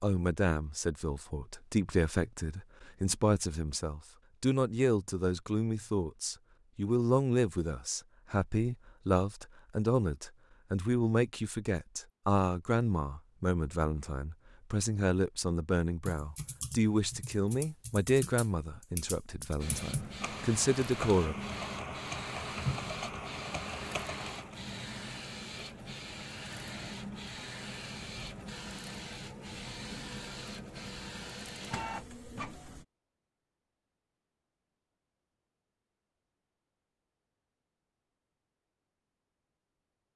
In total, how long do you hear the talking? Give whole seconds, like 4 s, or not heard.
21 s.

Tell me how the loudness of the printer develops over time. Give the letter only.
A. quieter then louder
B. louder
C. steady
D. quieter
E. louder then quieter
C.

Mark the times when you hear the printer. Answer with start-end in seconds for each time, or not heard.
19.6-32.9.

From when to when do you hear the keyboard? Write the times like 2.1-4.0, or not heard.
16.1-24.6.